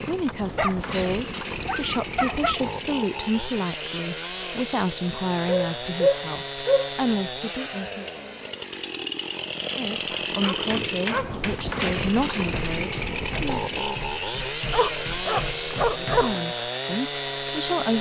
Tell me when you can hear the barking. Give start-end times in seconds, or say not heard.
0.6-2.7, 5.5-6.9, 10.2-11.4, 14.7-16.4.